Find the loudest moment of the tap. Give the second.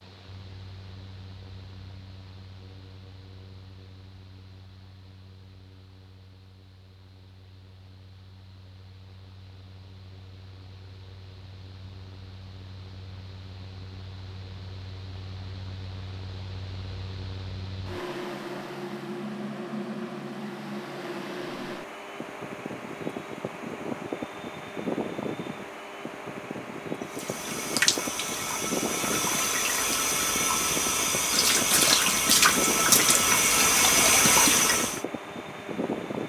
34 s.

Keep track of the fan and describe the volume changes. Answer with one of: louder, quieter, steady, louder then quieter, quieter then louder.
louder.